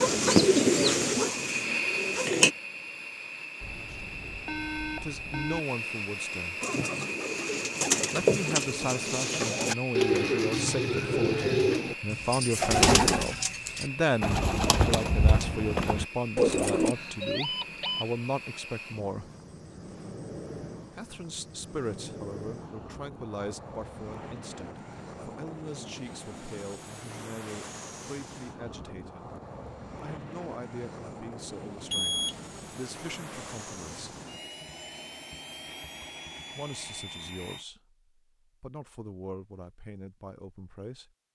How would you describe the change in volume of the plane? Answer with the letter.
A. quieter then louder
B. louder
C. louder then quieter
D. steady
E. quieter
E.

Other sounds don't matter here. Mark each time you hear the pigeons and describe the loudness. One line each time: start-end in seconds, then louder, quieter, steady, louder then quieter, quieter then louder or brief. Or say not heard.
0.0-2.5 brief
6.6-16.9 steady.